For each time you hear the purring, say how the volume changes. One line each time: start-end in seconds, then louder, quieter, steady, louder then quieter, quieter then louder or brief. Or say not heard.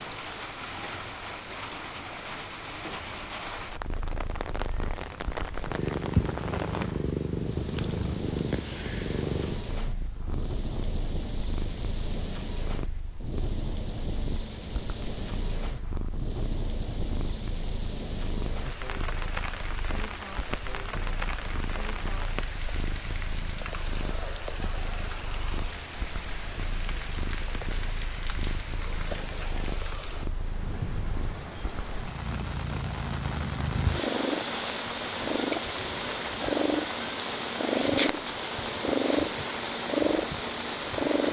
3.6-41.2 quieter then louder.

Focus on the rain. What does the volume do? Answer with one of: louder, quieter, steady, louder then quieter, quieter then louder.
steady.